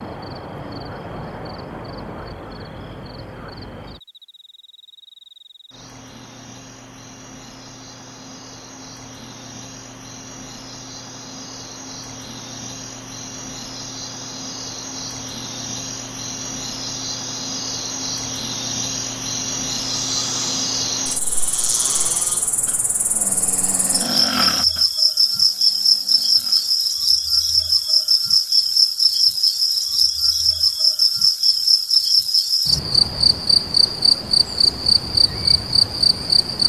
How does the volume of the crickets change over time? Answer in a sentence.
The volume of the crickets goes up.